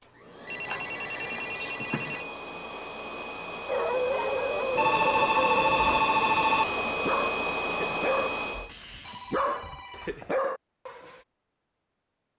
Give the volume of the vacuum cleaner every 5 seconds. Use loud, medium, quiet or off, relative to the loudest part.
medium, loud, off.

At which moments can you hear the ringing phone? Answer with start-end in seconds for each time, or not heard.
0.5-2.2, 4.8-6.7, 8.7-10.4.